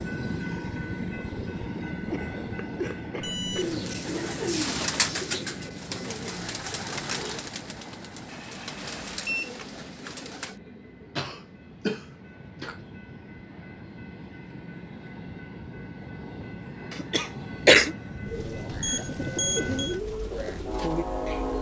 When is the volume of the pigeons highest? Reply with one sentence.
The loudest moment of the pigeons is at 5 seconds.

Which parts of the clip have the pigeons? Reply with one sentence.
The pigeons can be heard from 3.5 to 10.6 s and from 18.2 to 21.5 s.